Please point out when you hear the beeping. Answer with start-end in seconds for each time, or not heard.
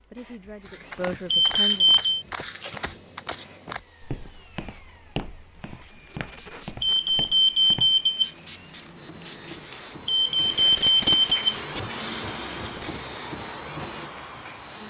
1.3-2.1, 6.8-8.3, 10.1-11.6.